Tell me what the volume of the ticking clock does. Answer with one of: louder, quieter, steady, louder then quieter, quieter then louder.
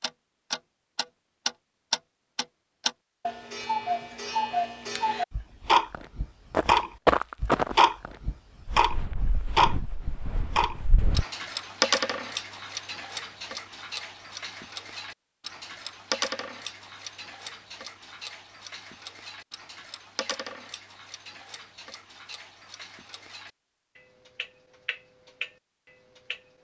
louder then quieter.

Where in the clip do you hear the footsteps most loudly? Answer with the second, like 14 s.
7 s.